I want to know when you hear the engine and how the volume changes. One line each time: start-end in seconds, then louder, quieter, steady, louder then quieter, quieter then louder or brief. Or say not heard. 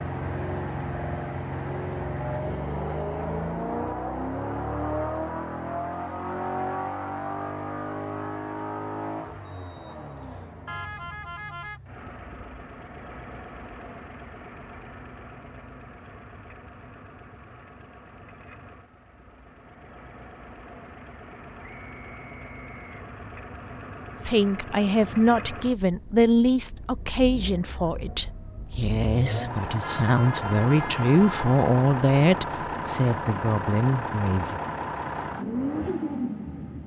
0.0-36.8 quieter then louder.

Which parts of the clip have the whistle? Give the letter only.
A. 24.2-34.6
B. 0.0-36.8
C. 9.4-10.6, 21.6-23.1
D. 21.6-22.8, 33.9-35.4
C.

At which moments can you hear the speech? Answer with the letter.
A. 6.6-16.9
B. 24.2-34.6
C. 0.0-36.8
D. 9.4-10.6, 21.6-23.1
B.